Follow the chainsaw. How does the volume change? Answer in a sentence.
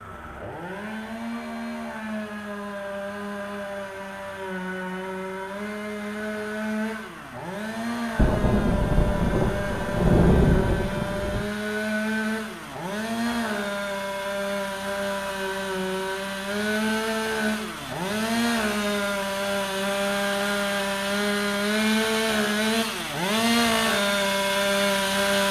The loudness of the chainsaw goes up.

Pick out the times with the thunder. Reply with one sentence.
The thunder can be heard from 8.2 to 11.4 s.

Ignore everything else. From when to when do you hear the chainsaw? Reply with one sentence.
You can hear the chainsaw from 0.0 to 25.4 s.